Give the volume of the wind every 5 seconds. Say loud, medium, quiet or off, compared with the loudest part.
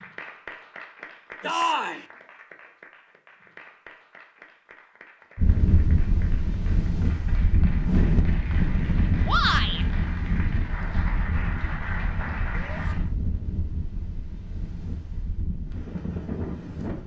off, loud, medium, medium.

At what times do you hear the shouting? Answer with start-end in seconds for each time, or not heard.
1.4-2.0, 9.2-9.8, 12.5-12.9.